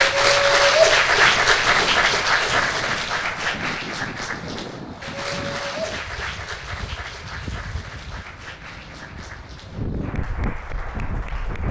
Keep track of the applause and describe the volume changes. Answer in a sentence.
The volume of the applause goes down.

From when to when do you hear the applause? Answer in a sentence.
You can hear the applause from 0.0 to 11.6 s.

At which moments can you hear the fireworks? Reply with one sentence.
The fireworks can't be heard in this clip.